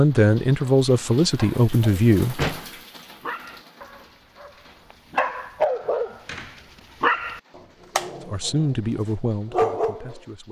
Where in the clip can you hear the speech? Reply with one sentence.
You can hear the speech from 0.0 to 2.5 s and from 8.2 to 10.4 s.